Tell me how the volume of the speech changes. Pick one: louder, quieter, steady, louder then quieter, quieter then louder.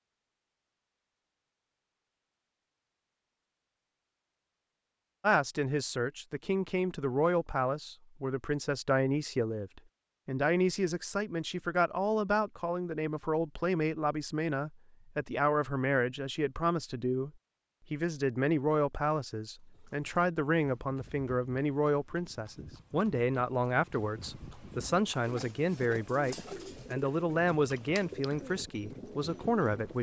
steady.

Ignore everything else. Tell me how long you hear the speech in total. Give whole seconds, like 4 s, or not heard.
24 s.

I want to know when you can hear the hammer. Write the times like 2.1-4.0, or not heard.
not heard.